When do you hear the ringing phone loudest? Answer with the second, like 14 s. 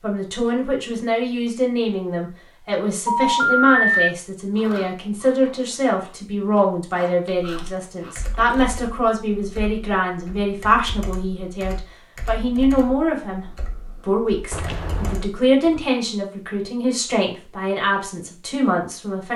4 s.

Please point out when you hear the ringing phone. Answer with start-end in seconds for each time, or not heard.
3.0-4.1, 14.5-15.2.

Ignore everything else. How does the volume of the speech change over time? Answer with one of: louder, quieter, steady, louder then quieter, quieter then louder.
steady.